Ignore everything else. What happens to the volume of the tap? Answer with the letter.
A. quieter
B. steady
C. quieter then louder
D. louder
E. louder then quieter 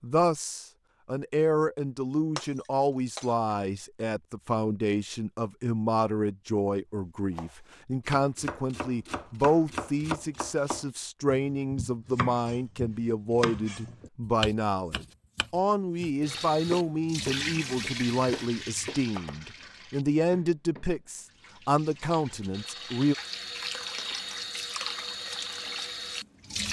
C.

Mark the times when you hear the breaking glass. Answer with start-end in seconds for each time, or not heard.
2.4-3.5.